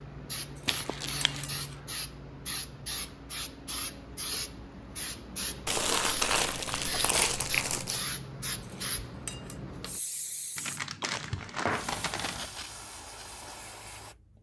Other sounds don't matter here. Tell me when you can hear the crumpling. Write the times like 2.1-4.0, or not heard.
0.7-1.4, 5.7-8.0, 10.6-12.5.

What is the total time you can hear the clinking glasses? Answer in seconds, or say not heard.
2 s.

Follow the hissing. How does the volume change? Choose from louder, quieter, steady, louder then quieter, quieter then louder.
steady.